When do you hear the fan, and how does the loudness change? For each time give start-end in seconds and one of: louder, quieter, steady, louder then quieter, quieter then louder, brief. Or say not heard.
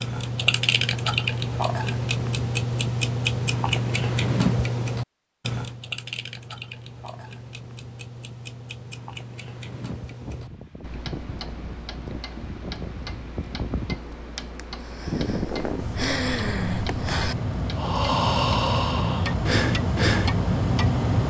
9.7-21.2 louder.